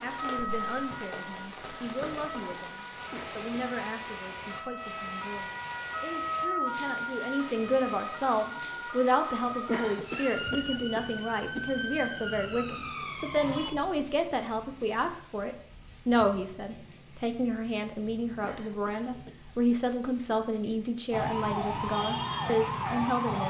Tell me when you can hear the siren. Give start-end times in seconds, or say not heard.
0.0-13.7, 21.1-23.4.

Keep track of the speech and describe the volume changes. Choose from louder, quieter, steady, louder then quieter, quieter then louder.
louder.